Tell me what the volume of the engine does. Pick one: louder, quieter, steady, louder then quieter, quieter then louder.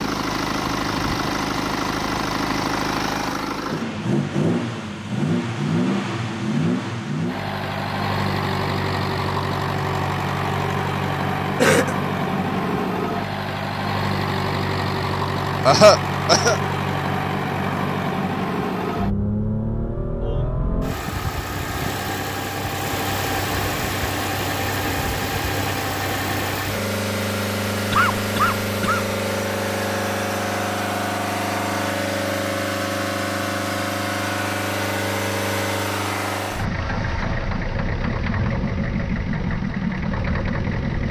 steady.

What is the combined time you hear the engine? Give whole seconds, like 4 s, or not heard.
41 s.